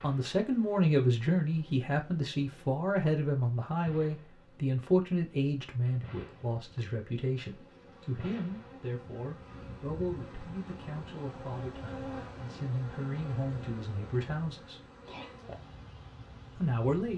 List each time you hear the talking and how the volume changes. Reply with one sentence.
You can hear the talking from 0.0 to 14.8 s, getting quieter; and briefly from 16.6 to 17.1 s.